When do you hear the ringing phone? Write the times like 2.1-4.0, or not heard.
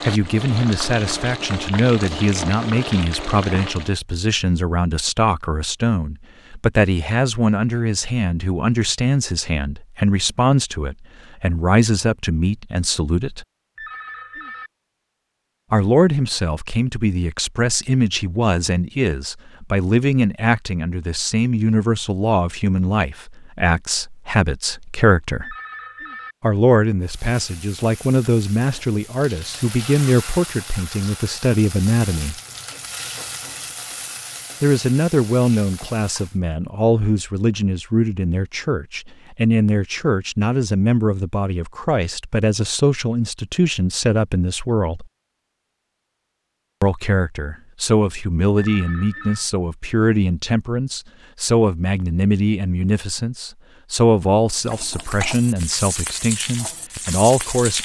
13.8-14.7, 25.4-26.4, 48.5-49.5.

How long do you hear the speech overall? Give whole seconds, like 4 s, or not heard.
51 s.